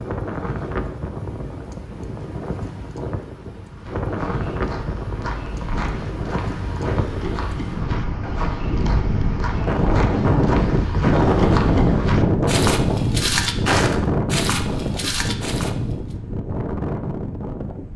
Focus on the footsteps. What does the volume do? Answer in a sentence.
The loudness of the footsteps goes up.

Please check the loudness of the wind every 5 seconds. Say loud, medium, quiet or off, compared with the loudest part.
medium, medium, loud, medium.